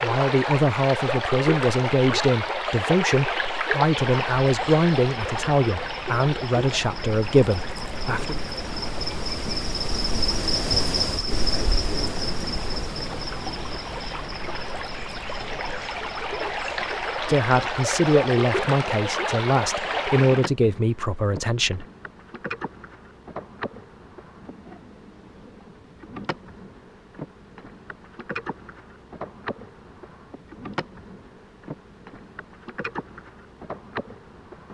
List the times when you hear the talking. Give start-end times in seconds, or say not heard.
0.0-8.3, 17.2-21.9.